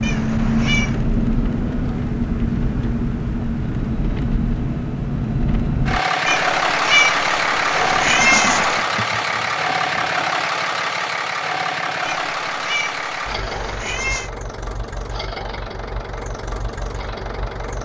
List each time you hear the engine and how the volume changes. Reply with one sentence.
You can hear the engine from 0.0 to 17.8 s, getting quieter.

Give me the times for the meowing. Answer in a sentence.
The meowing can be heard from 0.0 to 1.0 s, from 6.2 to 8.8 s and from 12.1 to 14.3 s.